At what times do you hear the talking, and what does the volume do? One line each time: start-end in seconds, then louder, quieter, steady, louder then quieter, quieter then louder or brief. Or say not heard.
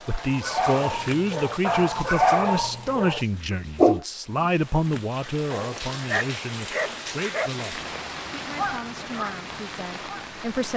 0.1-10.7 quieter.